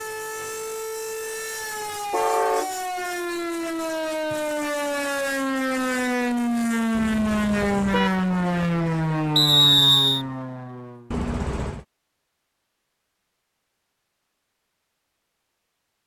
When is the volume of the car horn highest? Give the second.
2 s.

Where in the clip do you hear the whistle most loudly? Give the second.
10 s.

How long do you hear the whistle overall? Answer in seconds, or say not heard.
2 s.